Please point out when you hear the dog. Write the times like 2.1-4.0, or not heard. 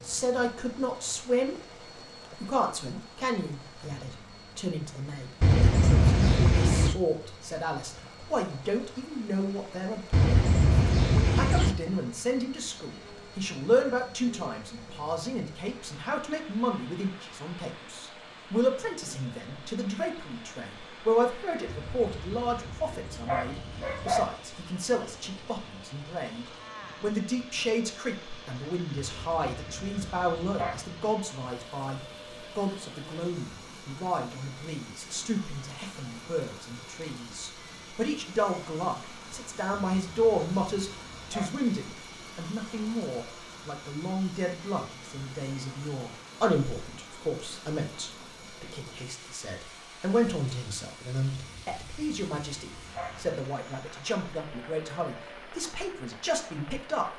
5.4-7.0, 10.1-11.8, 21.6-24.3, 28.9-30.9, 39.7-41.5, 51.3-53.4.